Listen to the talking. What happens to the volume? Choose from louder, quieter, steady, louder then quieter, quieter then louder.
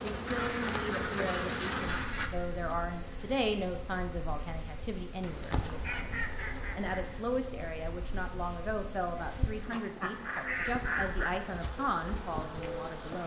steady.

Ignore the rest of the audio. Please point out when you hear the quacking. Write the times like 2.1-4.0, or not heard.
0.2-2.3, 5.2-7.2, 9.7-11.3.